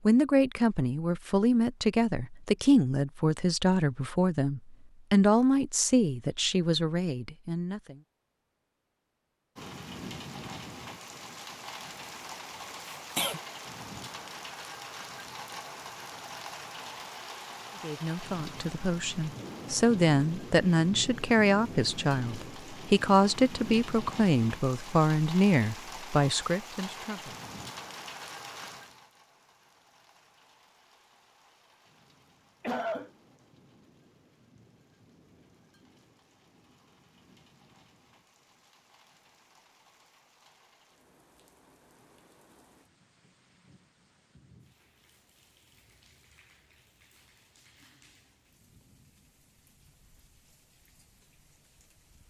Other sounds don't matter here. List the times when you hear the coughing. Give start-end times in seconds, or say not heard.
12.9-13.4, 32.6-33.1.